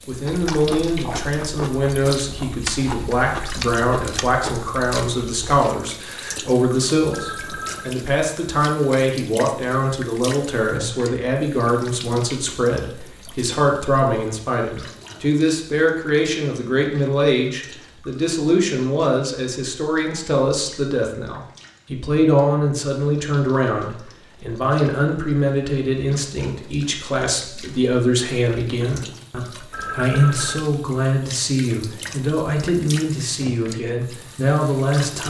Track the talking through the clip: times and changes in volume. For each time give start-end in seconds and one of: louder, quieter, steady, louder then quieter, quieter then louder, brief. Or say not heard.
0.1-35.2 steady.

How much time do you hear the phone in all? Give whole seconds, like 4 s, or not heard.
2 s.